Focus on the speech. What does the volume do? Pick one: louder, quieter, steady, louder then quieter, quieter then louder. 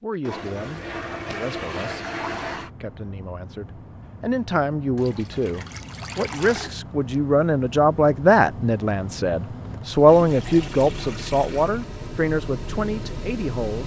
louder then quieter.